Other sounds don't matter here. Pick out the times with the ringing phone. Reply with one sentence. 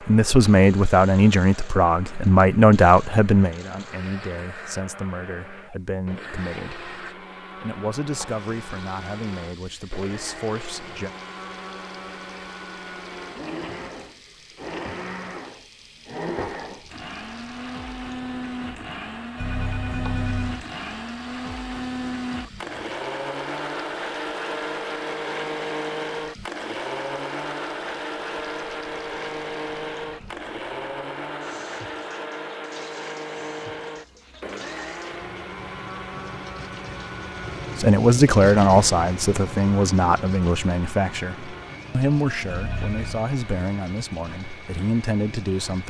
You can hear the ringing phone from 19.4 to 20.6 s and from 42.5 to 43.2 s.